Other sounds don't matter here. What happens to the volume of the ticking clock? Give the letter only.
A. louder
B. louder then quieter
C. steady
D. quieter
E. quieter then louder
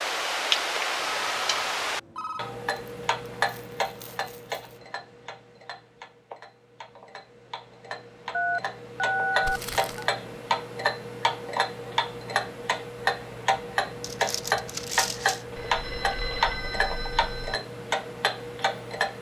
E.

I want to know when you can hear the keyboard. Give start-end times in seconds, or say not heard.
not heard.